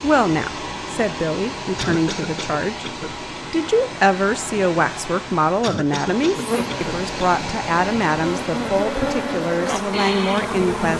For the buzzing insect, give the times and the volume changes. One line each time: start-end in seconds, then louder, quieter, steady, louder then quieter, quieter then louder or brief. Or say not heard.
6.3-10.9 louder.